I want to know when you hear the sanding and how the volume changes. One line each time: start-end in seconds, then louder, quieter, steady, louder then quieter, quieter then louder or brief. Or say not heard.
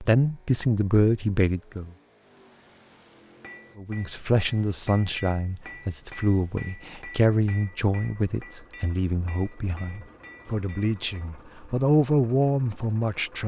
not heard.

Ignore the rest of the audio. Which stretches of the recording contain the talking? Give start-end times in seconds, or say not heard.
0.0-1.9, 3.8-13.4.